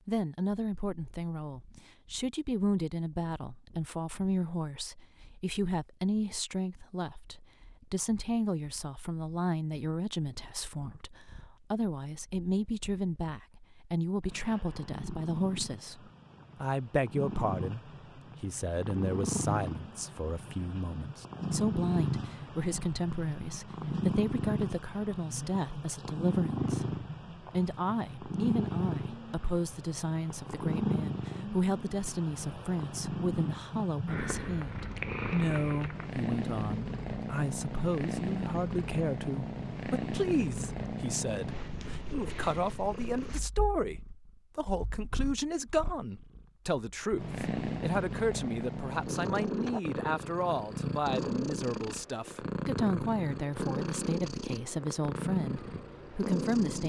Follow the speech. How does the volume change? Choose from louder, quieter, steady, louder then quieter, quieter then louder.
steady.